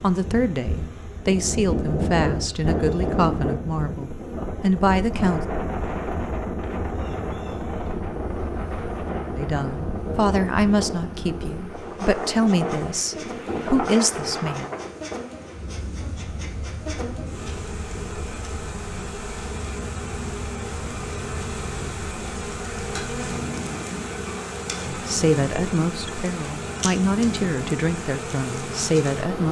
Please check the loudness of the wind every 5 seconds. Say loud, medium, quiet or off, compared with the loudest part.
loud, loud, loud, medium, medium, medium.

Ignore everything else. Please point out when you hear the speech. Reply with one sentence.
The speech can be heard from 0.0 to 5.5 s, from 9.3 to 14.7 s and from 24.8 to 29.4 s.